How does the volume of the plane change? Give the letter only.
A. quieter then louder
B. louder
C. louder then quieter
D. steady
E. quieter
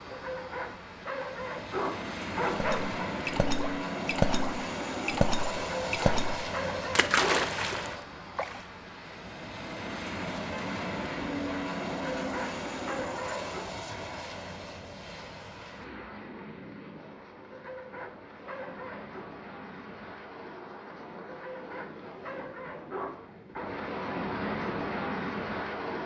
A.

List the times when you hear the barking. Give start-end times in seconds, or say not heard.
0.1-3.0, 5.8-7.9, 12.2-13.6, 17.5-19.3, 21.2-23.7.